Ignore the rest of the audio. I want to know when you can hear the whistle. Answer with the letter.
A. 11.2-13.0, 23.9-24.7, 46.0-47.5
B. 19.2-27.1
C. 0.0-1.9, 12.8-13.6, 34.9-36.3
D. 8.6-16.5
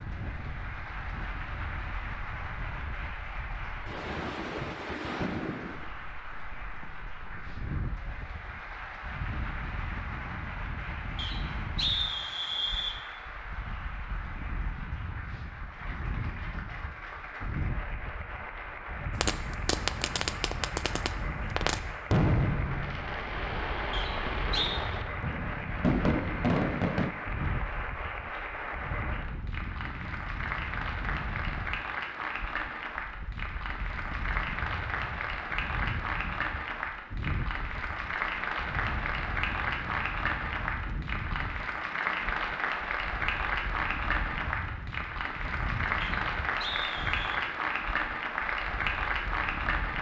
A.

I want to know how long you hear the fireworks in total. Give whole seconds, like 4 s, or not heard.
8 s.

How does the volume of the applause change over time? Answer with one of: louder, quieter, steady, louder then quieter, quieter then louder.
louder.